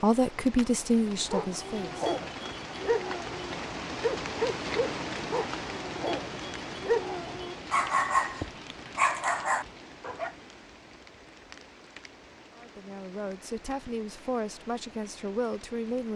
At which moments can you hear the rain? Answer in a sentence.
You can hear the rain from 0.0 to 16.1 s.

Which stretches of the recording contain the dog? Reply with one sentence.
You can hear the dog from 1.2 to 10.3 s.